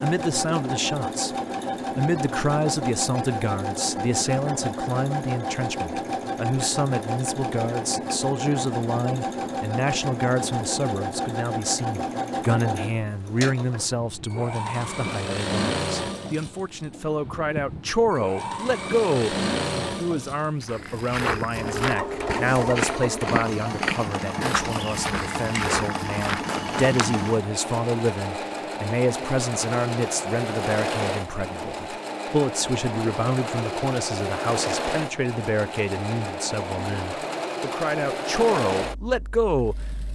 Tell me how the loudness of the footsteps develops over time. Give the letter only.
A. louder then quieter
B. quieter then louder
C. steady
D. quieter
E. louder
C.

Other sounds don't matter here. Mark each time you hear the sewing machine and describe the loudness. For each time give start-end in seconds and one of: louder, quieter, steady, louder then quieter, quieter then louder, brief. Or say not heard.
0.0-40.0 steady.